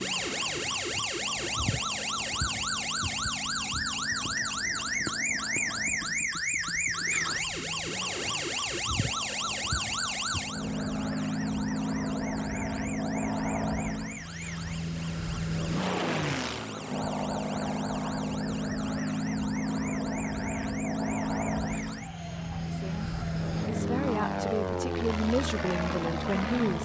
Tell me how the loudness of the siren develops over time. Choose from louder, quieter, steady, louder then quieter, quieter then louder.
quieter.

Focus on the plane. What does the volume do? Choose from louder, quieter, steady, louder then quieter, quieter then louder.
louder.